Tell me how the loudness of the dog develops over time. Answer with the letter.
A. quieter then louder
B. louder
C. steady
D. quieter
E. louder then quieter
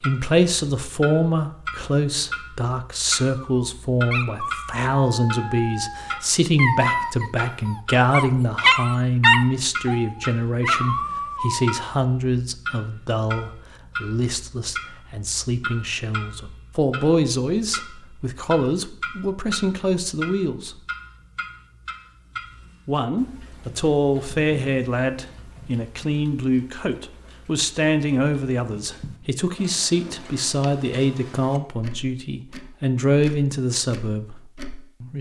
E.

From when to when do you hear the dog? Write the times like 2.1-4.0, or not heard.
3.4-11.9.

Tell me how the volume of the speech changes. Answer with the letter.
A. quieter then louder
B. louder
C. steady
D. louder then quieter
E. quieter
C.